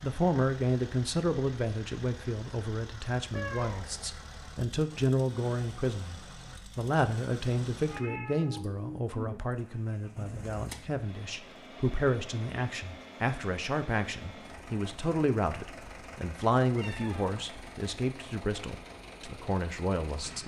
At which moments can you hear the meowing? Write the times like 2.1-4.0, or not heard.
3.3-4.2, 7.8-9.4, 16.7-17.4.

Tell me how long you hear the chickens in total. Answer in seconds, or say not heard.
not heard.